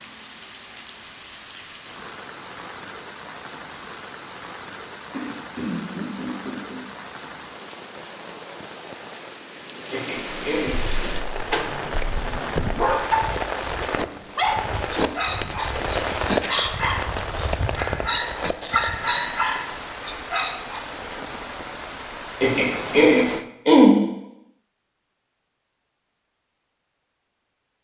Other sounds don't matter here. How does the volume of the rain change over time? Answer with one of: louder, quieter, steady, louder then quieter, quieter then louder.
louder then quieter.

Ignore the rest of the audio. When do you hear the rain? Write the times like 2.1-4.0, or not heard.
0.0-23.4.